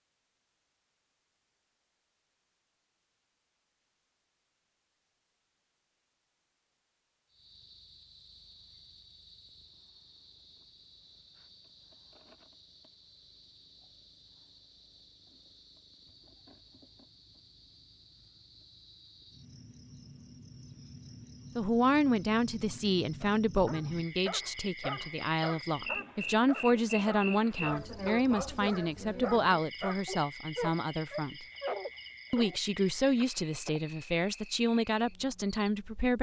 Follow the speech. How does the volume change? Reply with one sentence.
The volume of the speech stays about the same.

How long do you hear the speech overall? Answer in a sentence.
You can hear the speech for 14 seconds altogether.